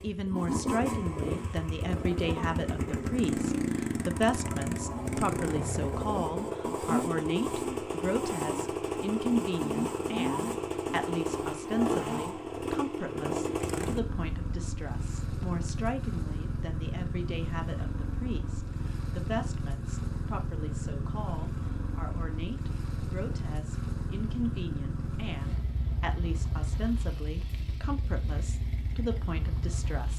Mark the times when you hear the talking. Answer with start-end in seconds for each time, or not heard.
0.0-30.1.